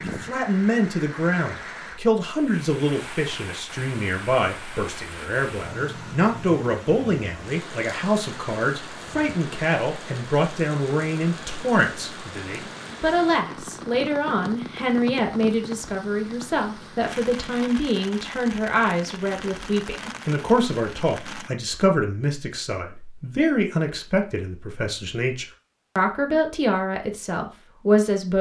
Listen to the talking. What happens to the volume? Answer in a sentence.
The loudness of the talking stays about the same.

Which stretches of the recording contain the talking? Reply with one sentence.
You can hear the talking from 0.1 to 28.3 s.